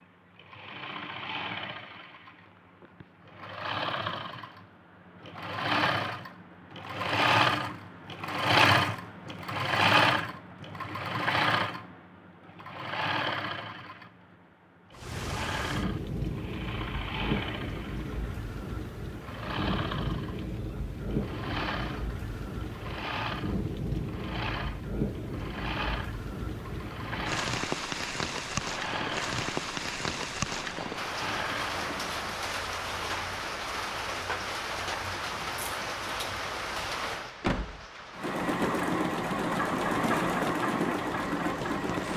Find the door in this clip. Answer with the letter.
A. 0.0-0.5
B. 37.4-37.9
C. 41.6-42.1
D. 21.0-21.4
B.